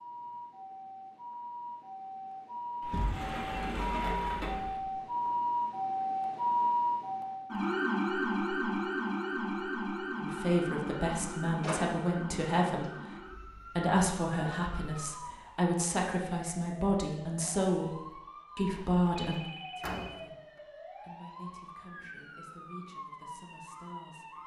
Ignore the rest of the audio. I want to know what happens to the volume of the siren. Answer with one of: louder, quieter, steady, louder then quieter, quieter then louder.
louder then quieter.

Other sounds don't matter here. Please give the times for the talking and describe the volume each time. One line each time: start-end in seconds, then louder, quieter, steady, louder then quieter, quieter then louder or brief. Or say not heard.
10.2-24.4 quieter.